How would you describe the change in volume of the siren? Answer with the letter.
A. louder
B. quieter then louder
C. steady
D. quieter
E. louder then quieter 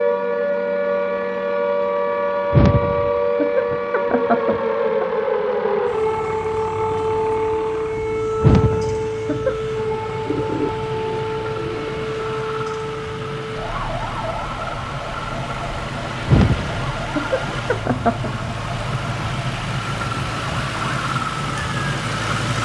D.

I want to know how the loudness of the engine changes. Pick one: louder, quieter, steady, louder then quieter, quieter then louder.
louder.